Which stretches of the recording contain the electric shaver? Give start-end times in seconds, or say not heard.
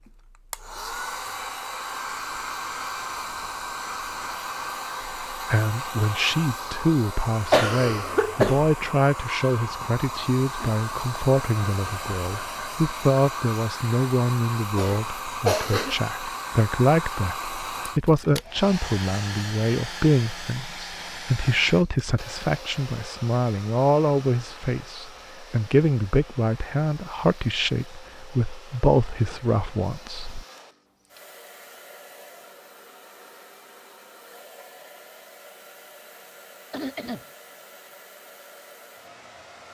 not heard.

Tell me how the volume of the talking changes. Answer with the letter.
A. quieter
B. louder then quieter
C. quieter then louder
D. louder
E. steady
E.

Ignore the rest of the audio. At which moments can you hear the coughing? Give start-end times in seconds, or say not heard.
7.5-8.7, 14.8-15.9, 36.7-37.2.